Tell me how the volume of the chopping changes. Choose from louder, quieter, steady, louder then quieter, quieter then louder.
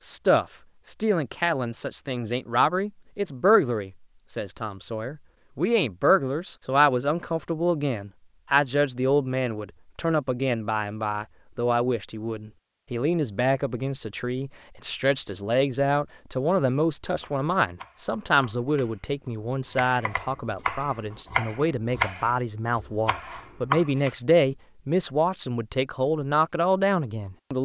louder.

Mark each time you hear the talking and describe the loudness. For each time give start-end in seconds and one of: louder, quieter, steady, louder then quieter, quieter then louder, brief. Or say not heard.
0.0-27.6 steady.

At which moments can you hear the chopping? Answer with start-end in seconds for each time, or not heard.
17.1-24.1.